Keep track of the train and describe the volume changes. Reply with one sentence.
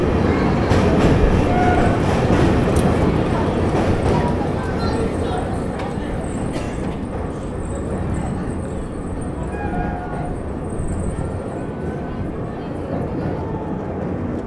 The volume of the train goes down.